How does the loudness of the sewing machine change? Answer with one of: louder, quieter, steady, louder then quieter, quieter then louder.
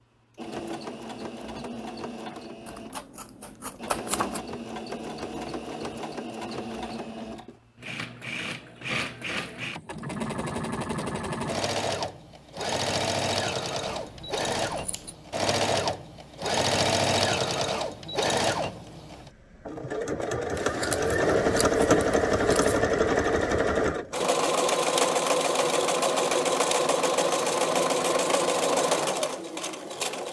louder.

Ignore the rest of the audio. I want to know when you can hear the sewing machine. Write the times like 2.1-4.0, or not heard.
0.3-30.2.